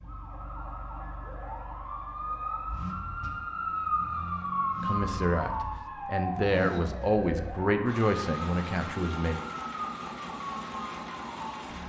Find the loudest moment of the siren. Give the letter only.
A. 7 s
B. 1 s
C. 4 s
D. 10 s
C.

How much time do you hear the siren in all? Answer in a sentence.
The siren can be heard for 12 seconds in total.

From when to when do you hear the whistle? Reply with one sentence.
You can't hear the whistle here.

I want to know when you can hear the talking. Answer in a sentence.
The talking can be heard from 4.8 to 9.4 s.